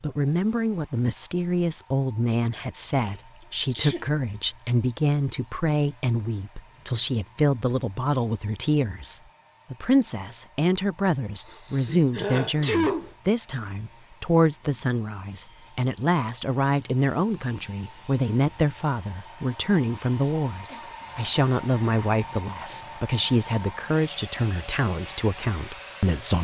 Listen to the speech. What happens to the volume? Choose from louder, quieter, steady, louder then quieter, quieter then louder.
steady.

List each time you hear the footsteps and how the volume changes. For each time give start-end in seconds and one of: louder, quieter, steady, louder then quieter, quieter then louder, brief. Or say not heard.
not heard.